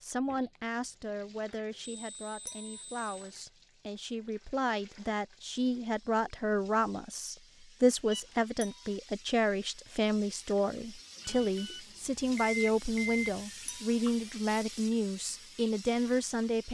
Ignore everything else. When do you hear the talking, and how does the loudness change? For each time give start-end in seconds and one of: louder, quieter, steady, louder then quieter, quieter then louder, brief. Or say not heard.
0.0-16.6 louder.